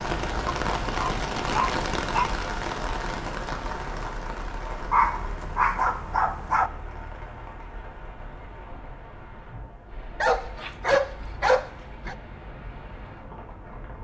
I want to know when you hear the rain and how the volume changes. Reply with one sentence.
The rain can be heard from 0.0 to 13.9 s, getting quieter.